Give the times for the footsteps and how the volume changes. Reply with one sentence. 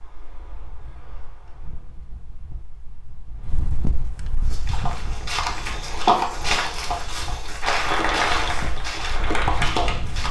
The footsteps can be heard from 4.4 to 10.2 s, getting louder then quieter.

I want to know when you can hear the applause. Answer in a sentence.
The applause can be heard from 7.6 to 10.2 s.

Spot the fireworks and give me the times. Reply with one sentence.
The fireworks can't be heard in this clip.